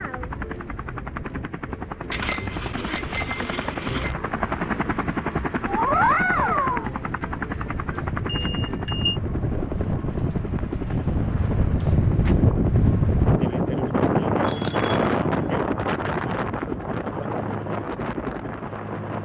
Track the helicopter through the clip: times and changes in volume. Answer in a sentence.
The helicopter can be heard from 0.0 to 19.2 s, getting louder then quieter.